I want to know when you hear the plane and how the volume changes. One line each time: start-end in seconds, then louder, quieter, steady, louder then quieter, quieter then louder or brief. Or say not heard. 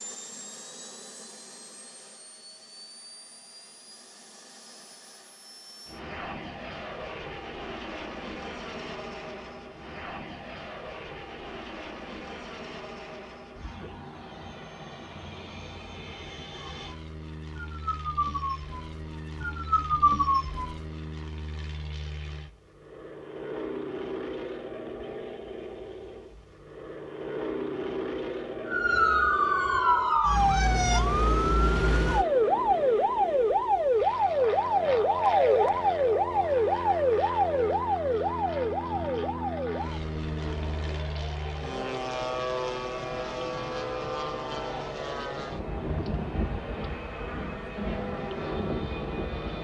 0.0-49.6 louder.